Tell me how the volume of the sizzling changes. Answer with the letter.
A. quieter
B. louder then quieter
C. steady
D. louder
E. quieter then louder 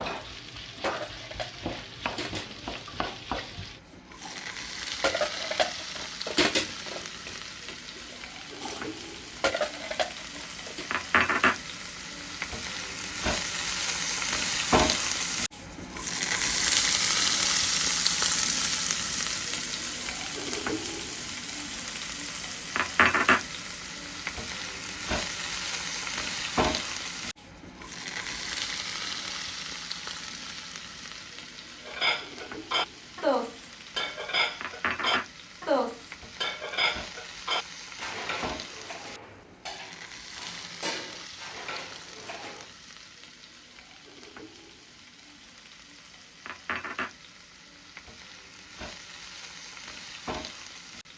B.